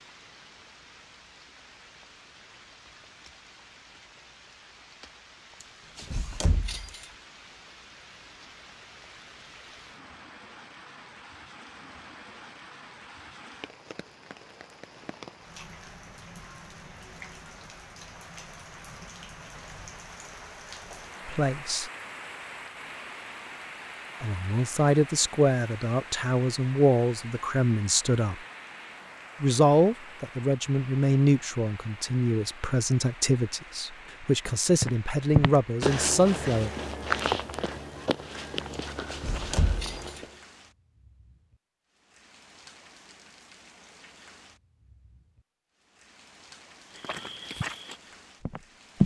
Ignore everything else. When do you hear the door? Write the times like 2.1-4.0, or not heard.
6.0-7.0, 39.1-40.2.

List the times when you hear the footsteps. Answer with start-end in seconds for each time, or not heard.
34.8-40.4, 47.0-49.0.